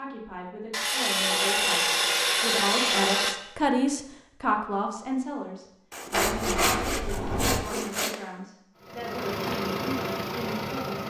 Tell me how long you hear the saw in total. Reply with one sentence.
You can hear the saw for 5 seconds altogether.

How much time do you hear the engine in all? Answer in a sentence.
The engine can be heard for 2 seconds in total.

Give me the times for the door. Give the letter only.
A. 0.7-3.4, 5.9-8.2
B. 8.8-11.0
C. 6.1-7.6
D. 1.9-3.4
C.